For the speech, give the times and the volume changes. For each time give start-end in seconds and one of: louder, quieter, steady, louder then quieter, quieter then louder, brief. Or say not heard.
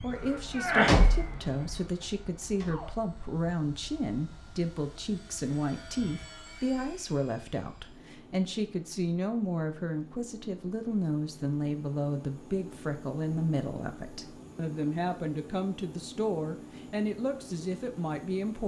0.0-18.6 steady.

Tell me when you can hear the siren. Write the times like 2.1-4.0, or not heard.
0.0-2.9.